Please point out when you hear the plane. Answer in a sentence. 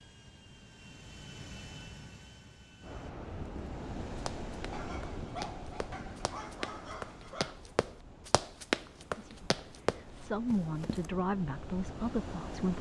You can hear the plane from 0.0 to 3.1 s.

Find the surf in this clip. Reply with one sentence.
The surf can be heard from 2.8 to 12.7 s.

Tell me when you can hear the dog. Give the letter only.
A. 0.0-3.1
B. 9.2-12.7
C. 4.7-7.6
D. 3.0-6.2
C.